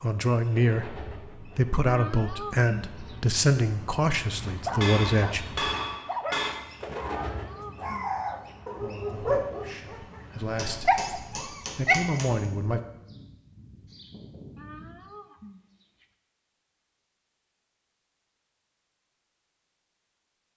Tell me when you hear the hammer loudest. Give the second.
6 s.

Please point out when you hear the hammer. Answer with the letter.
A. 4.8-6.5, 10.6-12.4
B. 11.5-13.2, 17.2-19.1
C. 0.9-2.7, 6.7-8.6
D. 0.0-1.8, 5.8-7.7
A.